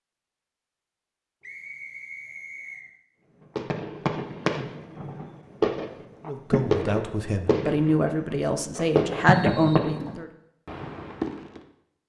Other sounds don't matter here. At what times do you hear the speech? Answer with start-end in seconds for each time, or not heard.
6.2-10.3.